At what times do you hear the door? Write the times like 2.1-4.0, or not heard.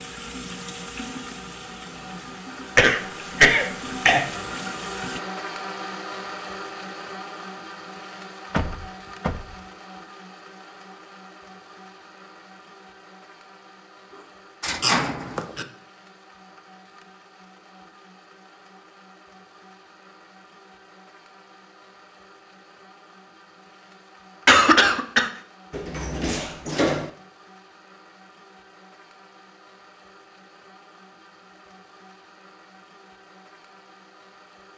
8.5-9.6, 14.1-15.4, 25.7-27.1.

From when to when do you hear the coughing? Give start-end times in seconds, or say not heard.
2.8-4.3, 14.8-15.7, 24.4-25.3.